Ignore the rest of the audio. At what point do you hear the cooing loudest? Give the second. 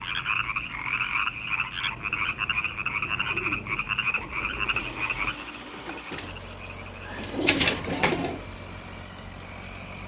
8 s.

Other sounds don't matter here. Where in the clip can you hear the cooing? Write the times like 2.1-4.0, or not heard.
2.9-8.4.